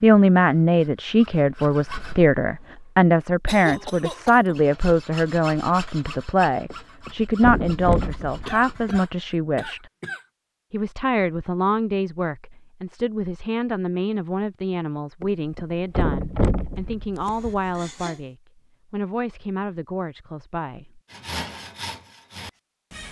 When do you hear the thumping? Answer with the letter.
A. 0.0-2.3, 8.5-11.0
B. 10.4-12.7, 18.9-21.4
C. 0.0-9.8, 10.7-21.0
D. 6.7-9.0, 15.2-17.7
D.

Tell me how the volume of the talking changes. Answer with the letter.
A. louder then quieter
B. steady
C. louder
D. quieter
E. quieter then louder
D.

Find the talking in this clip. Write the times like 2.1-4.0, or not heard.
0.0-9.8, 10.7-21.0.